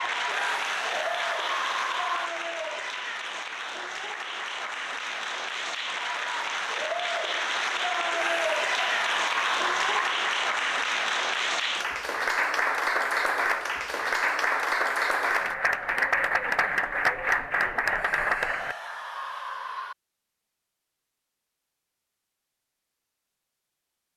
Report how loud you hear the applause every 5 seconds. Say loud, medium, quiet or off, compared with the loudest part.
medium, loud, loud, loud, off.